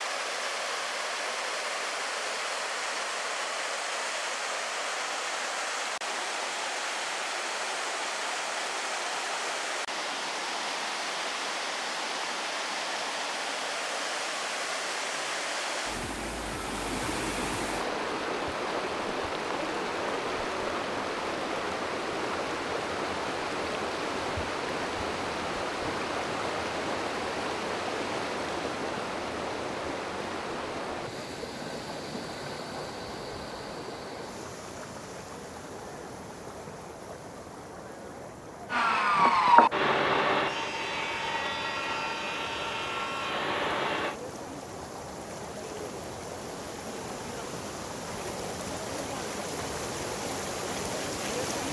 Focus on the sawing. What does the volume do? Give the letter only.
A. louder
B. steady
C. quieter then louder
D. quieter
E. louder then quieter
D.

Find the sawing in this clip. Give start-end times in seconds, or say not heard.
38.6-44.1.